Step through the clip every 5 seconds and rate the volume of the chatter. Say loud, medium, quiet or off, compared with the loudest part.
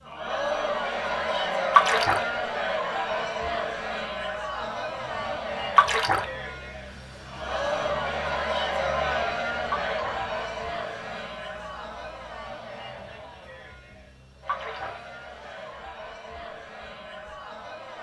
loud, loud, medium, quiet.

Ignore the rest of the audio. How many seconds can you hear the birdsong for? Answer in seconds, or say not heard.
not heard.